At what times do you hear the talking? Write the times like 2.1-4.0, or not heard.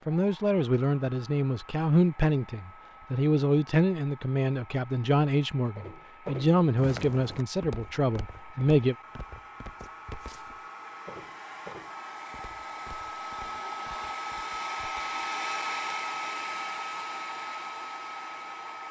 0.1-8.9.